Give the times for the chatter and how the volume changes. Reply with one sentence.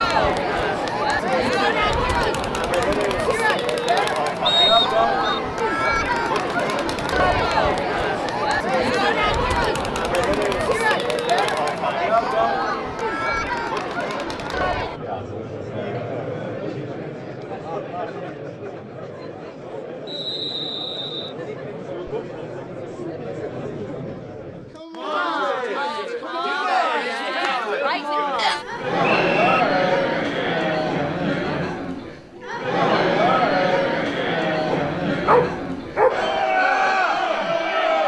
You can hear the chatter from 0.0 to 38.0 s, getting quieter then louder.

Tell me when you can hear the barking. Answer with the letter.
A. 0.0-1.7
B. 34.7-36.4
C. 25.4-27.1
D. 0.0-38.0
B.